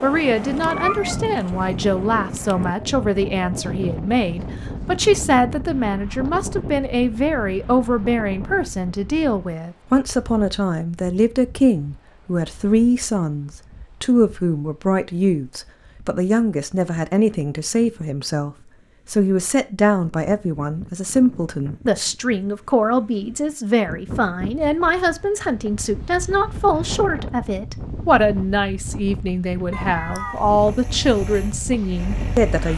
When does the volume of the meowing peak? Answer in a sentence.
The volume of the meowing peaks at 1 second.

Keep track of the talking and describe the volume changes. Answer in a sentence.
The loudness of the talking stays about the same.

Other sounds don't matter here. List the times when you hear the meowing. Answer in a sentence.
The meowing can be heard from 0.7 to 1.2 s and from 29.7 to 30.4 s.